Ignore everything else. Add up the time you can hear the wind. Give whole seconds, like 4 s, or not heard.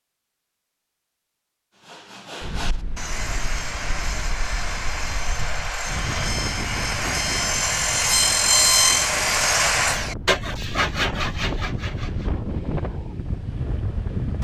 12 s.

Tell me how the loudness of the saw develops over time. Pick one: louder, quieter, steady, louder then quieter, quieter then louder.
louder then quieter.